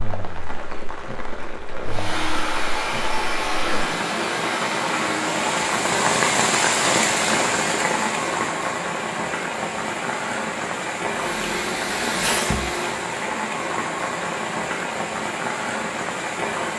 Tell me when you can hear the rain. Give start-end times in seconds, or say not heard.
0.0-16.7.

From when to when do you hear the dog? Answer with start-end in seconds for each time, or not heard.
not heard.